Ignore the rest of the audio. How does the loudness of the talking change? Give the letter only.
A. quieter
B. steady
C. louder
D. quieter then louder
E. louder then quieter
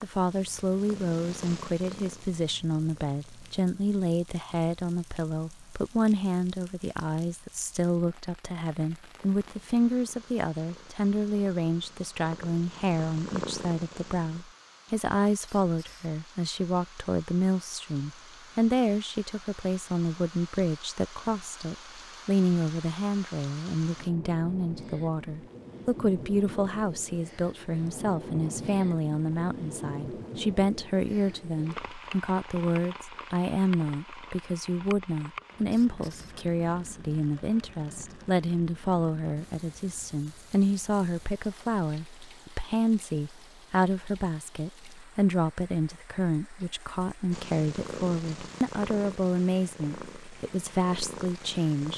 B.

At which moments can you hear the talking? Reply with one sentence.
You can hear the talking from 0.0 to 51.9 s.